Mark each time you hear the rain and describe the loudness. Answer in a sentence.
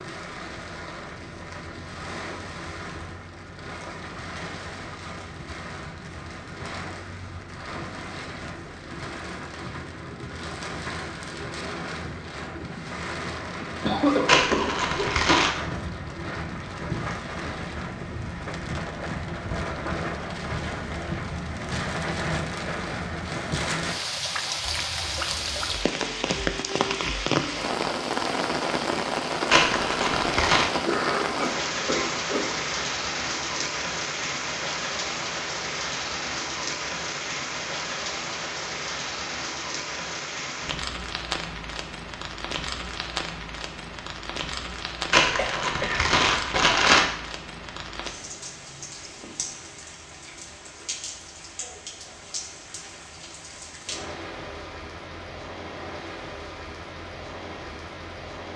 The rain can be heard from 0.0 to 58.5 s, getting louder then quieter.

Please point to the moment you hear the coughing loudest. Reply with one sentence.
The loudest moment of the coughing is at 14 seconds.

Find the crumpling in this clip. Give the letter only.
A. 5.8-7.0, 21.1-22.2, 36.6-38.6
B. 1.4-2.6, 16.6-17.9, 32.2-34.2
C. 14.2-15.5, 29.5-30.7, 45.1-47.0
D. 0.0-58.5
C.